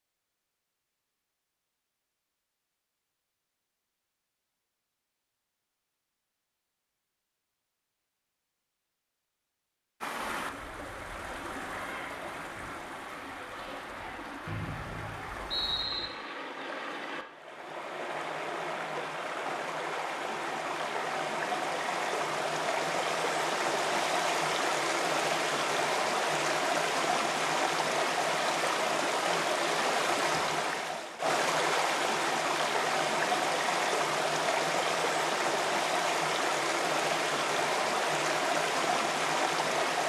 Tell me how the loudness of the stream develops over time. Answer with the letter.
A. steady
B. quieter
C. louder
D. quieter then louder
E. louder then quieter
C.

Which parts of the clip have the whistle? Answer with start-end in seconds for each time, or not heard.
14.4-16.1.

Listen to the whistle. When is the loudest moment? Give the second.
16 s.